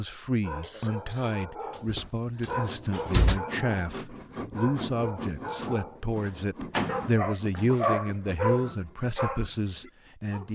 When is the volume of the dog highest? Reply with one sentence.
The loudest moment of the dog is at 8 seconds.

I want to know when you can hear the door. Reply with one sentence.
You can hear the door from 1.8 to 3.4 s and from 6.2 to 7.8 s.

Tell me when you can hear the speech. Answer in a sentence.
The speech can be heard from 0.0 to 10.5 s.